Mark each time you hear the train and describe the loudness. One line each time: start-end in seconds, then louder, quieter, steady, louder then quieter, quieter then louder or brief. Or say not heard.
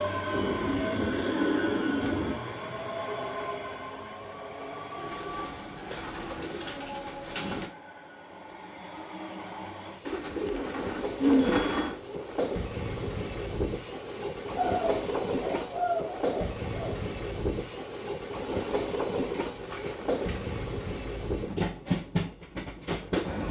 0.0-23.4 quieter then louder.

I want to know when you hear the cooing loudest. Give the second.
11 s.